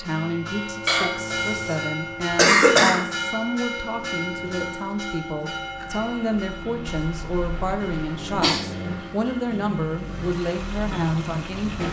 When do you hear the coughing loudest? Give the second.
3 s.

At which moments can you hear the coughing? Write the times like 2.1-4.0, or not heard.
0.8-1.8, 2.4-3.0, 6.8-8.6.